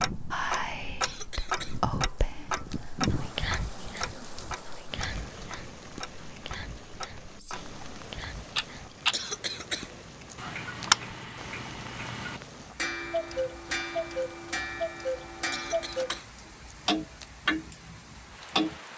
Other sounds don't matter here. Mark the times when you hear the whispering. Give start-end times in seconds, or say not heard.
0.3-8.9.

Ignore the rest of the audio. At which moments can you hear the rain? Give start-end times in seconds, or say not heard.
0.0-18.9.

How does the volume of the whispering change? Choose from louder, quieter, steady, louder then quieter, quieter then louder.
quieter.